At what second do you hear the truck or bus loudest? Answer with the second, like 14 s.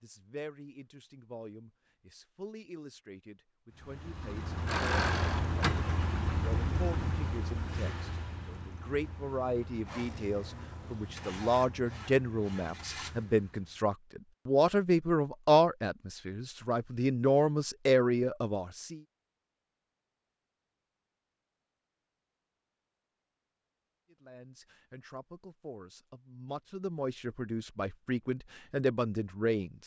5 s.